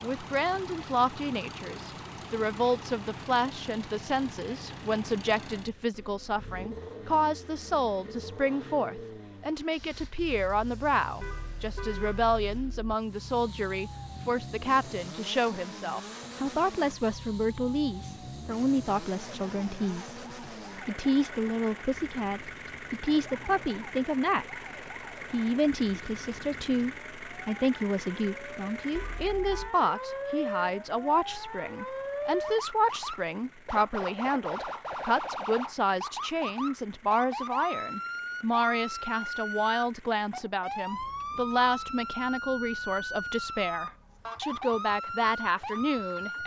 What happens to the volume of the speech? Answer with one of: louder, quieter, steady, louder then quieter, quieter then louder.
steady.